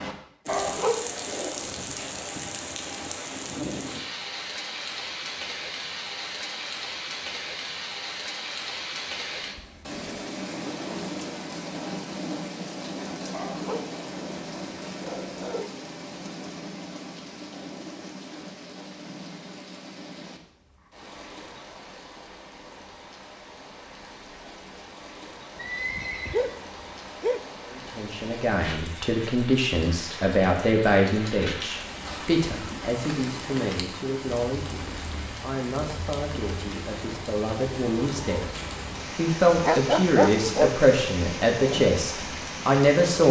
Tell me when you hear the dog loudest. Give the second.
40 s.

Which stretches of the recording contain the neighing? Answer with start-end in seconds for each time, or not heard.
25.6-26.6.